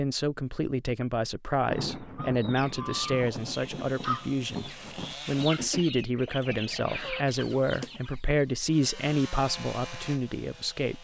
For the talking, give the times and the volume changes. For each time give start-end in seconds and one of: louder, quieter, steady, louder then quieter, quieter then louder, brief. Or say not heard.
0.0-10.9 steady.